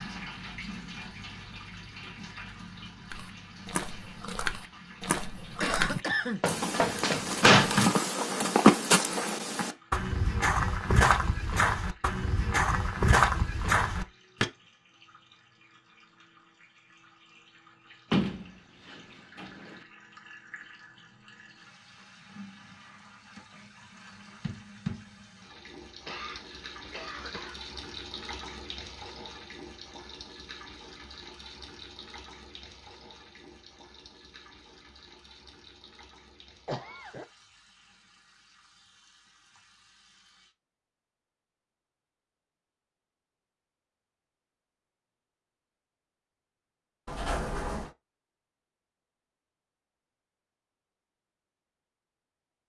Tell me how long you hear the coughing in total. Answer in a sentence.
The coughing can be heard for 3 seconds in total.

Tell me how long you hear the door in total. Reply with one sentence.
The door can be heard for 4 seconds in total.